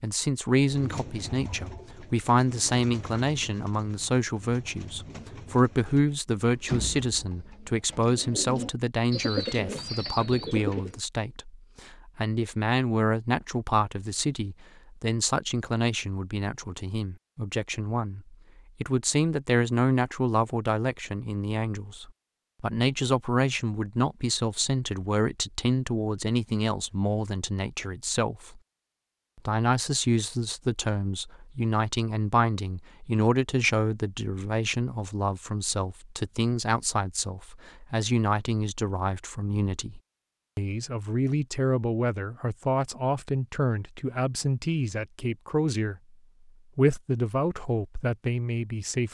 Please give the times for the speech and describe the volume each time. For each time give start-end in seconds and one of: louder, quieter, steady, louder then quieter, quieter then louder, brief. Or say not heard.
0.0-28.6 steady
29.4-46.0 steady
46.8-49.0 brief.